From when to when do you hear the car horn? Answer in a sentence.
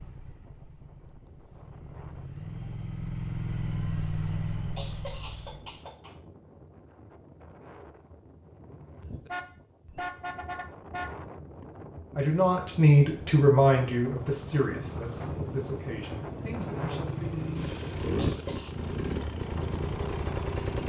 You can hear the car horn from 9.2 to 11.1 s.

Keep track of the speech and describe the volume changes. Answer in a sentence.
The loudness of the speech goes down.